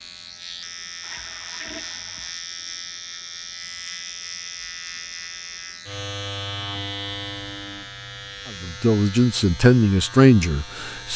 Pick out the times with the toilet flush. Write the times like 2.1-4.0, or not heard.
1.0-2.4.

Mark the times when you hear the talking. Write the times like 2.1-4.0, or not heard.
8.6-11.1.